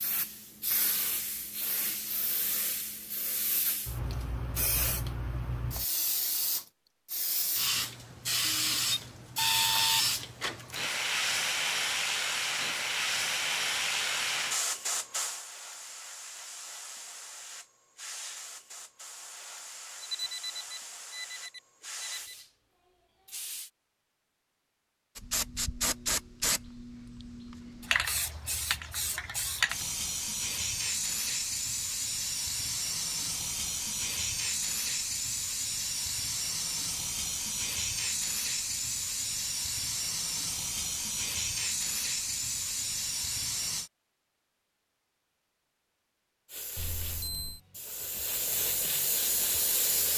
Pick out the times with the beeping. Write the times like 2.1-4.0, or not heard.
8.4-10.1, 20.0-22.4, 46.8-47.6.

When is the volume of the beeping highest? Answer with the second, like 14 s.
10 s.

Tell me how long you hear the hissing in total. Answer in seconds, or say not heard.
46 s.